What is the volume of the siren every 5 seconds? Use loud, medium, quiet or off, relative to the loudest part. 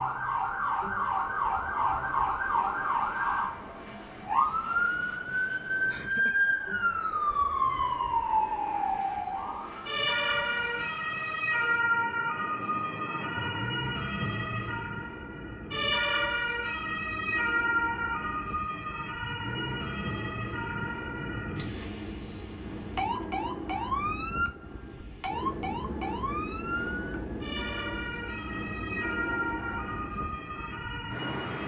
loud, loud, loud, loud, medium, medium, medium.